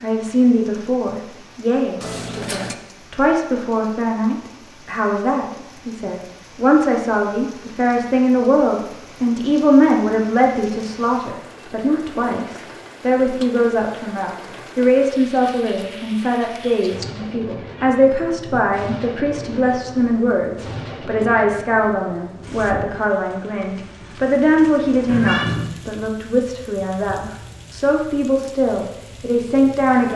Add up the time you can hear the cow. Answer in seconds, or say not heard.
not heard.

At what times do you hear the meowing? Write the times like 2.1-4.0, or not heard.
2.0-2.8, 16.8-18.6, 25.1-25.7.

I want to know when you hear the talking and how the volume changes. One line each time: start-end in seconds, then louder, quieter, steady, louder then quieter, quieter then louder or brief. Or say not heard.
0.0-30.1 steady.